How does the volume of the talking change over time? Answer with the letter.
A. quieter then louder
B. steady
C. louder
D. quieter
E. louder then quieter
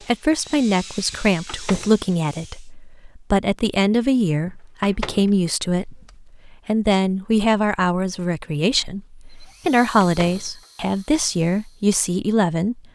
B.